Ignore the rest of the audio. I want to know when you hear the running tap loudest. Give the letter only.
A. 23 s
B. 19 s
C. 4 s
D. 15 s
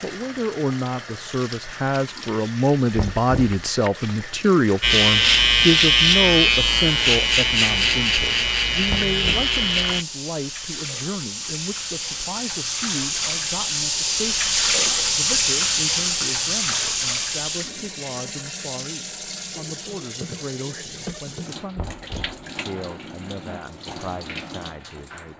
D.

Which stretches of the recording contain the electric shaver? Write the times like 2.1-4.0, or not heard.
4.8-10.1.